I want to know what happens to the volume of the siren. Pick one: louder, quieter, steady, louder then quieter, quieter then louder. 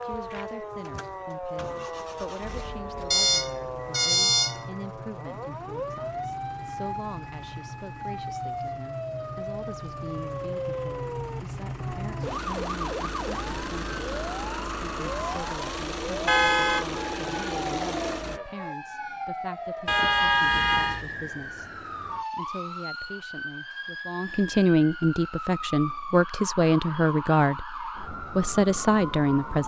steady.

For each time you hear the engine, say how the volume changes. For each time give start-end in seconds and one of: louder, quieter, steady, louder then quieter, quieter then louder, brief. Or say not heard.
0.0-18.4 louder.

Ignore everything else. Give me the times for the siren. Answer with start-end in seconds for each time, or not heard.
0.0-29.6.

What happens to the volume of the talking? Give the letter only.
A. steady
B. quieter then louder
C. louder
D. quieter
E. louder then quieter
C.